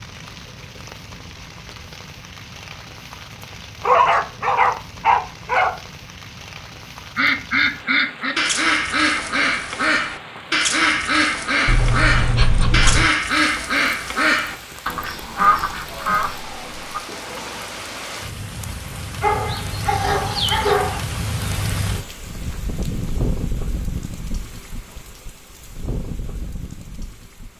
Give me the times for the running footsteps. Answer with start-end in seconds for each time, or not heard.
not heard.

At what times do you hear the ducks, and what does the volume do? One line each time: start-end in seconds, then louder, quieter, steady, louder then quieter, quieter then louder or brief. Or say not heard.
7.2-17.0 steady.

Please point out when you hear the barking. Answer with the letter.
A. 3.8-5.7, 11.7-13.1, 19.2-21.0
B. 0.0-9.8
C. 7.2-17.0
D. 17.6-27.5
A.